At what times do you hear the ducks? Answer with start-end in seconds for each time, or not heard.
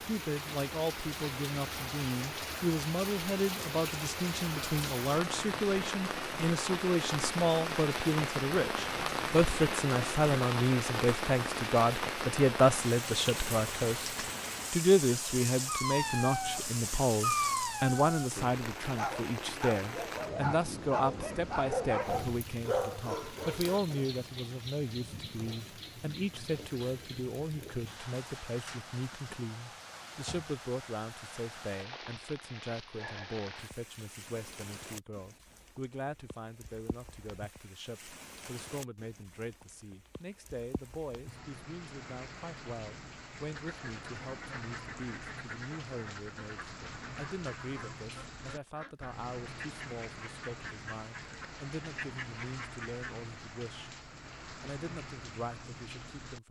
43.5-53.1.